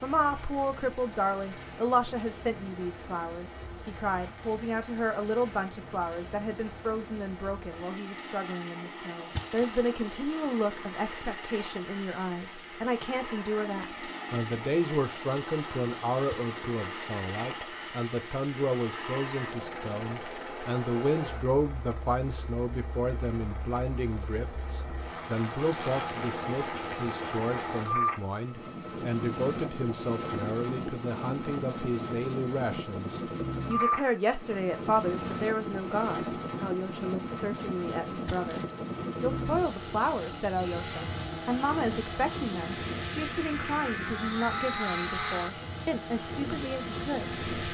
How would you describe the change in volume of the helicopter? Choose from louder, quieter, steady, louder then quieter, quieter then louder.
louder.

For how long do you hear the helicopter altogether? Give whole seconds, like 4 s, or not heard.
48 s.